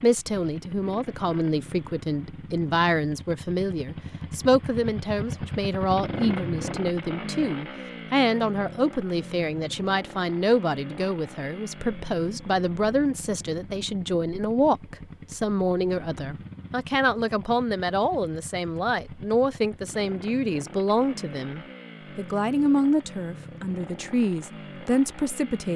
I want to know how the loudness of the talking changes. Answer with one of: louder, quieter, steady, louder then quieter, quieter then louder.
steady.